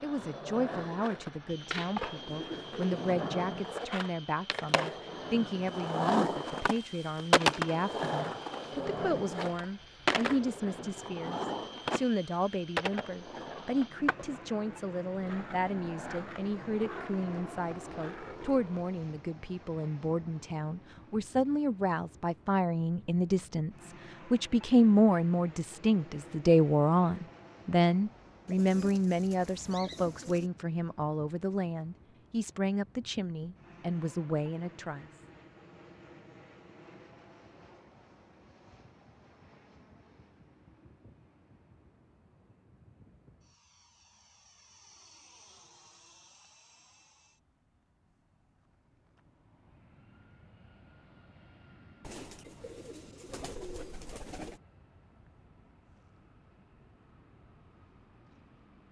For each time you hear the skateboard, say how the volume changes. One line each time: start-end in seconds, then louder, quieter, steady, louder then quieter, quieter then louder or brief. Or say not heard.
0.0-19.0 louder then quieter.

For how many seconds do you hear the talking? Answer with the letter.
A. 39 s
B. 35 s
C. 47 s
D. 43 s
B.